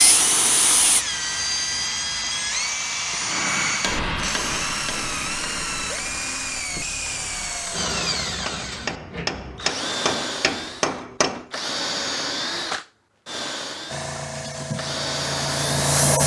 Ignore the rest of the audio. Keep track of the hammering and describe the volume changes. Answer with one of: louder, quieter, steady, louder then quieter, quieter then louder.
quieter then louder.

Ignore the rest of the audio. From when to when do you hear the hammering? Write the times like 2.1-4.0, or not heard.
3.2-11.6.